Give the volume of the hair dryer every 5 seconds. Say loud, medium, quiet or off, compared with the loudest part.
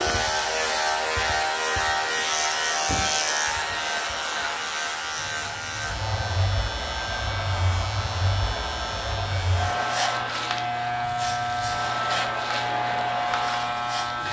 medium, loud, loud.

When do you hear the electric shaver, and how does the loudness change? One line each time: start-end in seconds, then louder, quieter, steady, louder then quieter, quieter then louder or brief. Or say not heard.
0.0-14.2 quieter then louder.